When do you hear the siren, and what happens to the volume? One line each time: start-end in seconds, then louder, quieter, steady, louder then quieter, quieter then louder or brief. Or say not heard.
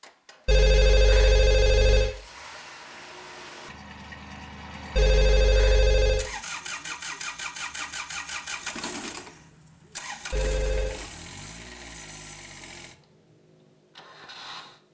not heard.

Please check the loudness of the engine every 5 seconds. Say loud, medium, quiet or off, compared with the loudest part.
medium, loud, medium.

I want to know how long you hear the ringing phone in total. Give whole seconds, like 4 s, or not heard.
4 s.